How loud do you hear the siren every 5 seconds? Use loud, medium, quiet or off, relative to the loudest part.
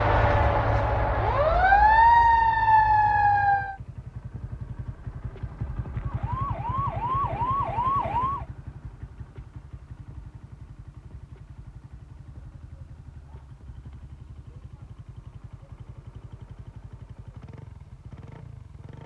loud, medium, off, off.